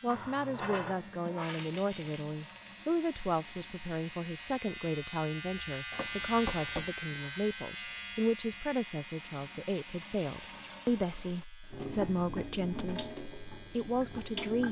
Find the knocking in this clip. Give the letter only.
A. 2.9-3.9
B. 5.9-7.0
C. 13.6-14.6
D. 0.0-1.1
B.